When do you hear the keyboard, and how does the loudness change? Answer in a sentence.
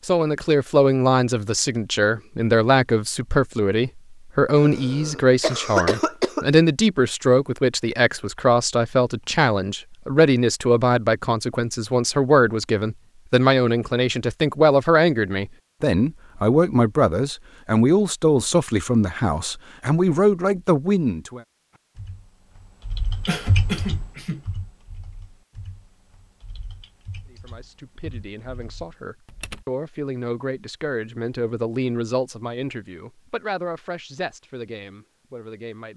You can hear the keyboard from 21.7 to 29.6 s, getting quieter.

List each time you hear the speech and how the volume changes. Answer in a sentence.
You can hear the speech from 0.1 to 21.4 s, at a steady volume; and from 27.3 to 35.9 s, getting louder then quieter.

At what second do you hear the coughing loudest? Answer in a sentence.
The volume of the coughing peaks at 6 seconds.